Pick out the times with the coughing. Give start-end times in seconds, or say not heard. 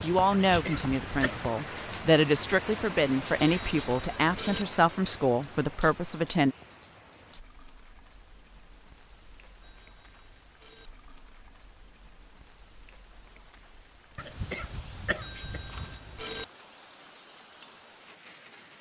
0.3-1.5, 14.2-16.0.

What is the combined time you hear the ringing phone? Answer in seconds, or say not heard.
4 s.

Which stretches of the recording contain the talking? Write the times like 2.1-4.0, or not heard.
0.0-6.5.